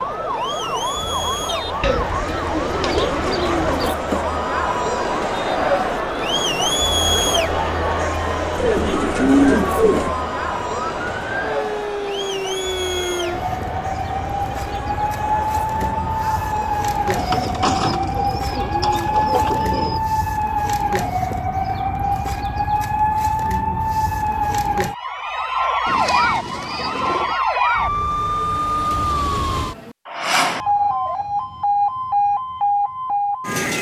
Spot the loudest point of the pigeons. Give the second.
9 s.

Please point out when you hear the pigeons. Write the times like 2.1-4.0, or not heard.
1.8-4.0, 8.6-10.2, 17.1-20.0, 25.9-27.4.